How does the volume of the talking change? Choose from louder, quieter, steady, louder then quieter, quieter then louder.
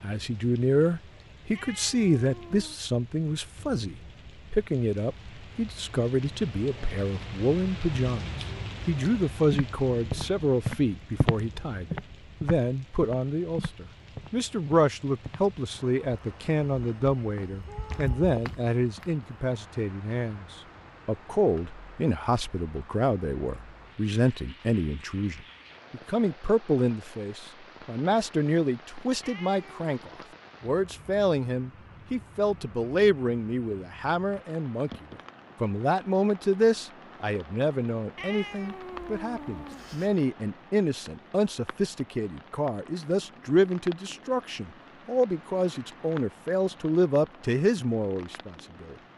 steady.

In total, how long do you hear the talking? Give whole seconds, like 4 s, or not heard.
48 s.